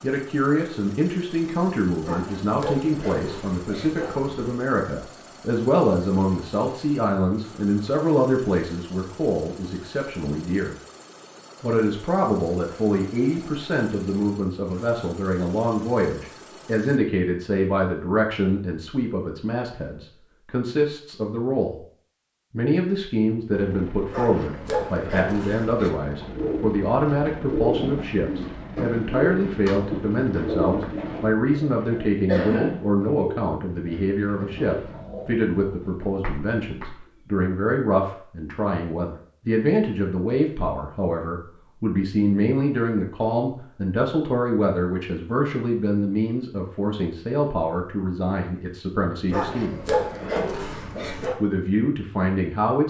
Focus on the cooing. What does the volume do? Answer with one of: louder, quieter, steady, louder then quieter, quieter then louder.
quieter.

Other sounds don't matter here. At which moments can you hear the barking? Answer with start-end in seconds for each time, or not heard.
2.0-4.6, 24.1-25.9, 49.2-51.4.